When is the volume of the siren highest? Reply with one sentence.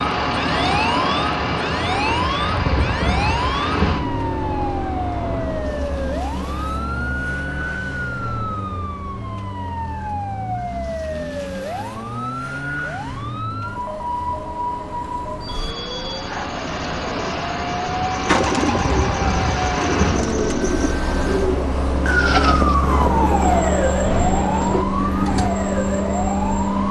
The volume of the siren peaks at 23 seconds.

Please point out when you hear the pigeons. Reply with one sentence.
You can hear the pigeons from 18.1 to 25.5 s.